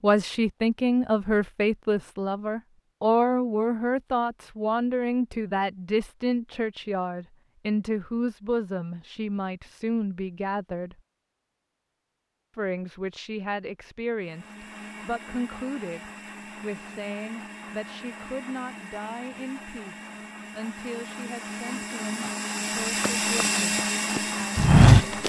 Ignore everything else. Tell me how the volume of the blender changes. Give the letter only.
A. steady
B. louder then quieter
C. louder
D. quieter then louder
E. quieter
C.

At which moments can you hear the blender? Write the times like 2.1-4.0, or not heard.
14.2-25.2.